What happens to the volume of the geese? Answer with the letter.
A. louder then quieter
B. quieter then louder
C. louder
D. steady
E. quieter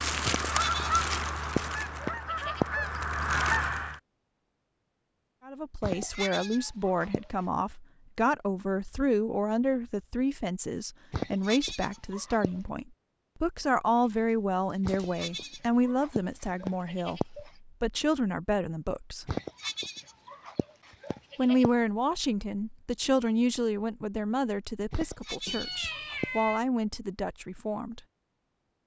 B.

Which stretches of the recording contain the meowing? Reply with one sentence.
The meowing can be heard from 6.0 to 6.8 s, from 14.8 to 15.5 s and from 25.4 to 26.6 s.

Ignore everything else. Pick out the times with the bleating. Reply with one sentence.
You can hear the bleating from 0.2 to 3.0 s, from 5.8 to 7.2 s, from 11.1 to 12.5 s, from 14.8 to 17.5 s, from 19.2 to 21.7 s and from 24.9 to 26.3 s.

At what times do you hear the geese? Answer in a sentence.
The geese can be heard from 0.0 to 4.0 s.